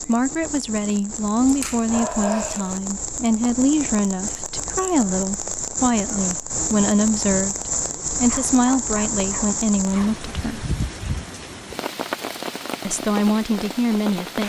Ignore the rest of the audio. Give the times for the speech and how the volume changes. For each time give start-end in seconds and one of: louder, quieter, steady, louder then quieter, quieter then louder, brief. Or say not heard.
0.0-10.7 steady
12.8-14.4 brief.